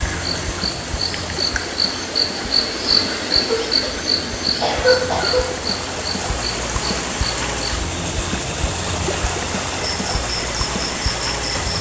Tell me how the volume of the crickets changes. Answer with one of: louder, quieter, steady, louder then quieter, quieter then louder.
quieter.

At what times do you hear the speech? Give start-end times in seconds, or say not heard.
not heard.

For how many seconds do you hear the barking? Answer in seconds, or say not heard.
not heard.